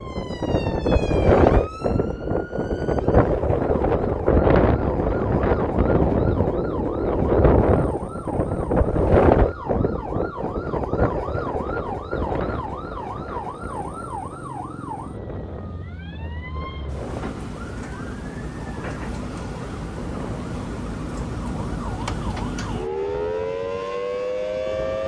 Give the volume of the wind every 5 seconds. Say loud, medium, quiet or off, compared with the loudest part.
loud, loud, medium, quiet, quiet.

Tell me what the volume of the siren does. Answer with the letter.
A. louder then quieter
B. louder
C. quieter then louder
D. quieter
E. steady
B.